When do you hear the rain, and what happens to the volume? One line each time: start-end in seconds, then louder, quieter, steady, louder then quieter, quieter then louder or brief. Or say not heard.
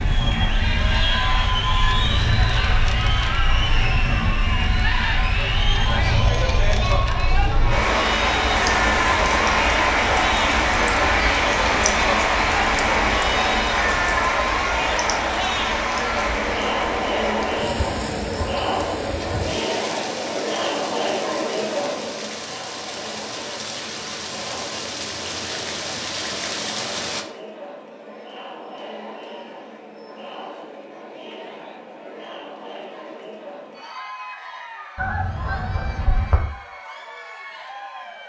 0.0-27.2 louder then quieter.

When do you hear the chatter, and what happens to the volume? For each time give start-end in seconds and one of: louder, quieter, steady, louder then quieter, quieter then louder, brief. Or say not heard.
0.0-38.2 quieter.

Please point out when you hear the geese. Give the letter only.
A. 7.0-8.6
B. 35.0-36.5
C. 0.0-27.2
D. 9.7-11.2
B.